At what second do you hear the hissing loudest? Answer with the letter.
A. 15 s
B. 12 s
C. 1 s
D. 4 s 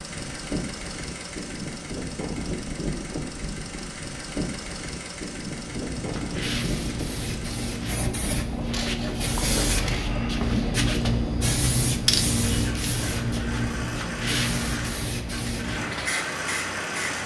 B.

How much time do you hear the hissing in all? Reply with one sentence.
You can hear the hissing for 12 seconds altogether.